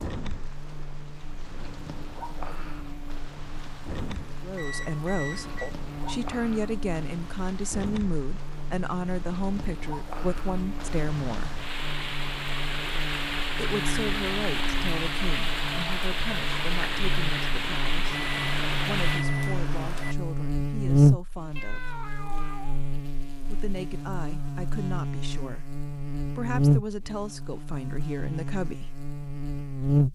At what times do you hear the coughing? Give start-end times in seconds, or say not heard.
not heard.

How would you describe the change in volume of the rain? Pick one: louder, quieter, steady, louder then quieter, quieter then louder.
louder.